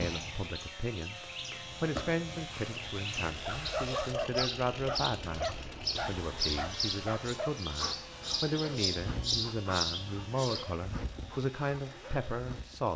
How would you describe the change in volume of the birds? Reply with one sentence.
The volume of the birds goes up.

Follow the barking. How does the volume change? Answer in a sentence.
The loudness of the barking goes down.